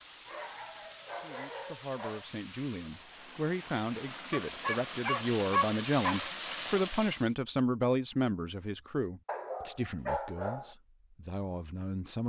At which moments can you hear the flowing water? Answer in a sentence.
You can hear the flowing water from 0.0 to 7.3 s.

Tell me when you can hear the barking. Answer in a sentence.
You can hear the barking from 0.2 to 2.3 s, from 4.3 to 6.3 s and from 9.2 to 10.8 s.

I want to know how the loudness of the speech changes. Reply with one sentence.
The volume of the speech goes up, then down.